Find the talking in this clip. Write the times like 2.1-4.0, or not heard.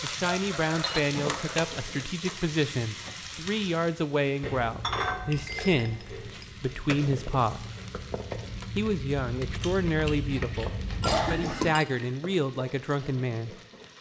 0.0-7.7, 8.8-13.6.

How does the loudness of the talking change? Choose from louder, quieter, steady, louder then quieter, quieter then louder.
steady.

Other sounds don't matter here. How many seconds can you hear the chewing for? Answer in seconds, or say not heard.
7 s.